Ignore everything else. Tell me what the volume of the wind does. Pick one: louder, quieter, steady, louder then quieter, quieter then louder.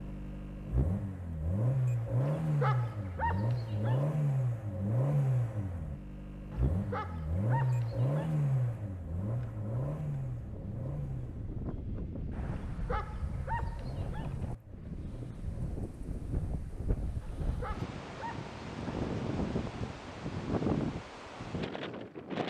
louder.